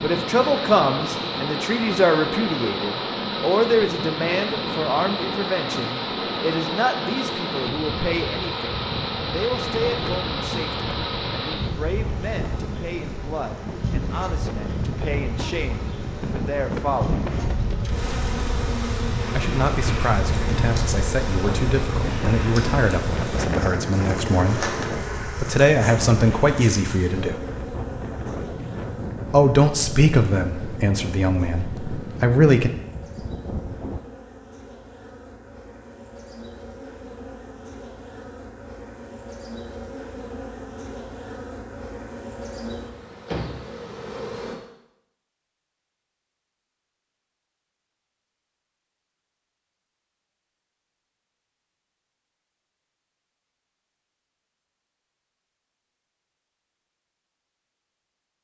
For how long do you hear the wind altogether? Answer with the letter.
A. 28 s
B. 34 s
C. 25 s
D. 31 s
B.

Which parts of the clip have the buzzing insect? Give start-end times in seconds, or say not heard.
0.0-44.6.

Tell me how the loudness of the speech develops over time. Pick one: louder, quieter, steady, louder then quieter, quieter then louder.
quieter then louder.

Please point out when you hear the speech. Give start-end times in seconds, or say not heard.
0.0-17.2, 19.4-27.4, 29.3-32.7.